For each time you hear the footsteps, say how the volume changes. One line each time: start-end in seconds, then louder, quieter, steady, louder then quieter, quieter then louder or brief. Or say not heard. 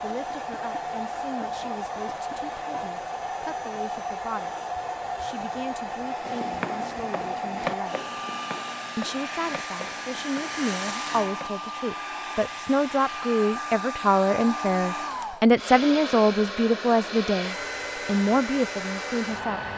6.2-11.8 louder then quieter.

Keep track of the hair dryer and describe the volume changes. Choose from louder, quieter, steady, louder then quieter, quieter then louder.
steady.